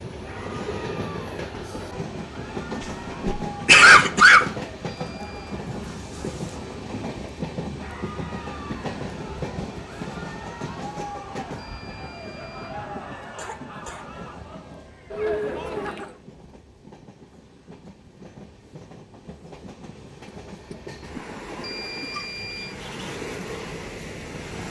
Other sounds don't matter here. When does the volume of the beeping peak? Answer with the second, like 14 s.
22 s.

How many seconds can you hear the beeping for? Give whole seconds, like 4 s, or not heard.
3 s.